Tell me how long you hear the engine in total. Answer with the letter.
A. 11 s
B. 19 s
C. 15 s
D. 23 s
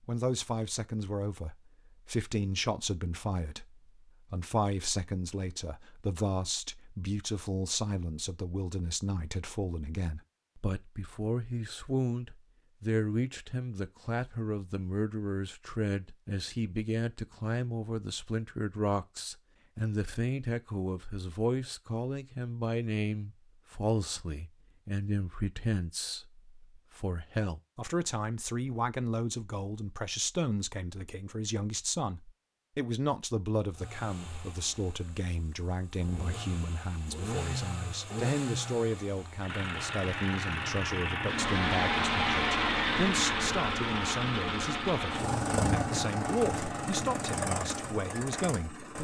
C.